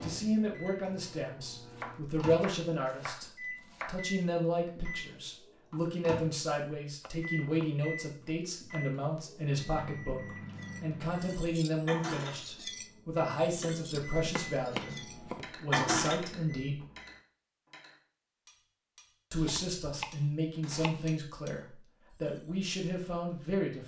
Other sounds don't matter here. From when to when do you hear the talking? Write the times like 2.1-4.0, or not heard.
0.0-16.9, 19.3-23.8.